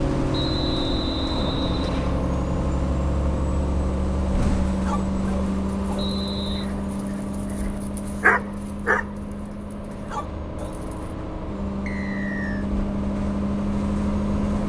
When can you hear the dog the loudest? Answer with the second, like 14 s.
8 s.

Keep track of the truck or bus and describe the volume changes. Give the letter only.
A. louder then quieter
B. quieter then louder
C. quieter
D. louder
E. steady
B.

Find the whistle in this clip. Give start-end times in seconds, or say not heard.
0.3-2.2, 6.0-6.7, 11.8-12.7.